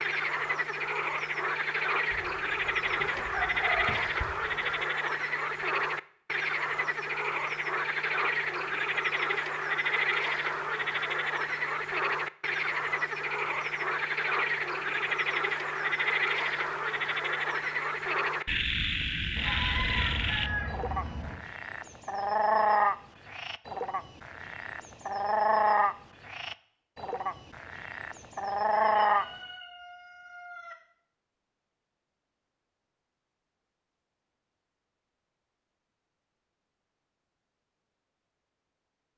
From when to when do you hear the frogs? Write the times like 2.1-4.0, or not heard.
0.0-29.2.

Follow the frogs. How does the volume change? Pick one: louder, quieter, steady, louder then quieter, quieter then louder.
steady.